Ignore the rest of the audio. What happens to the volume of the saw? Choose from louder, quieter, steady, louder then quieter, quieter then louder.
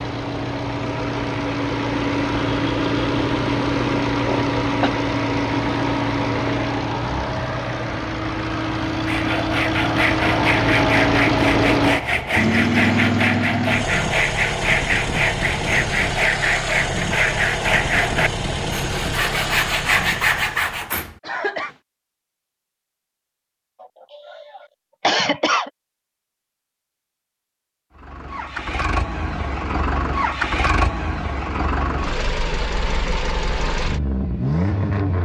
steady.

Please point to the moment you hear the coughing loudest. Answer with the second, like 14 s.
25 s.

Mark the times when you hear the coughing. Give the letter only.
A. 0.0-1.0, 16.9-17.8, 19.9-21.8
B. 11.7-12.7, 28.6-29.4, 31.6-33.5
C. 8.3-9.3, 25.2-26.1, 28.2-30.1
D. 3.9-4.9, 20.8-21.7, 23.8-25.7
D.